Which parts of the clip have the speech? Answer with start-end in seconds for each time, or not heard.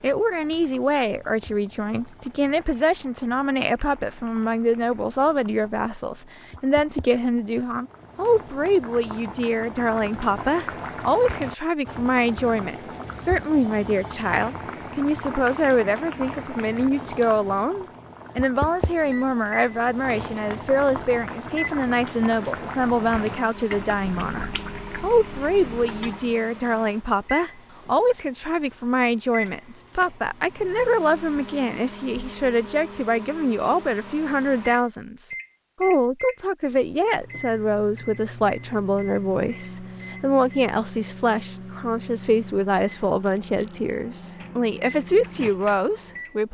0.0-46.4.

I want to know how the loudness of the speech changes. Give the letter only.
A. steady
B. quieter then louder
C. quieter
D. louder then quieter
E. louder
A.